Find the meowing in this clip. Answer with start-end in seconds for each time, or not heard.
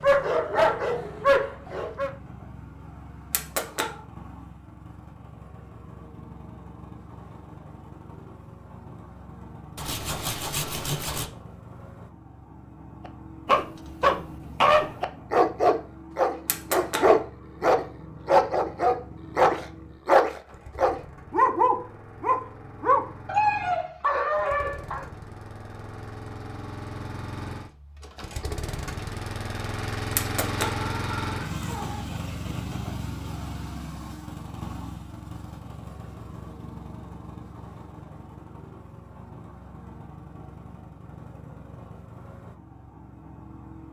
3.3-4.0, 16.4-17.2, 30.1-32.0.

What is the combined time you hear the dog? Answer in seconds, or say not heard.
14 s.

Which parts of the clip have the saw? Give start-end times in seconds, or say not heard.
9.8-11.3.